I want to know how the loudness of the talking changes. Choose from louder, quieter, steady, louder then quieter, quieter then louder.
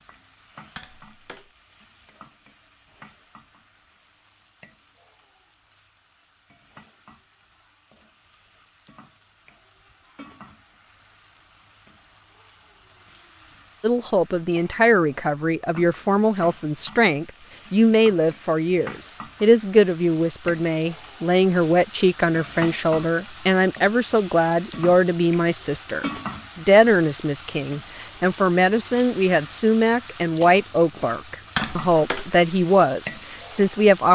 steady.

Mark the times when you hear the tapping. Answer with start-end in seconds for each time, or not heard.
0.8-1.5, 31.6-32.3.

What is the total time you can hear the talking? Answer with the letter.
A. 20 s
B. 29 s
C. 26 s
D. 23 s
A.